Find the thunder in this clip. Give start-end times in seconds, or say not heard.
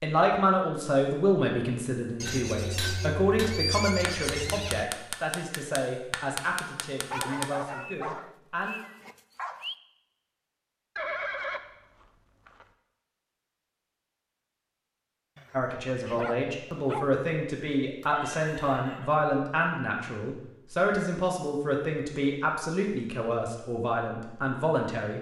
not heard.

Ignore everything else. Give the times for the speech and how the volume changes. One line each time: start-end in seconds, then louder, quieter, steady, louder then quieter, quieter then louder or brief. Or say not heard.
0.0-8.8 quieter
15.5-25.1 steady.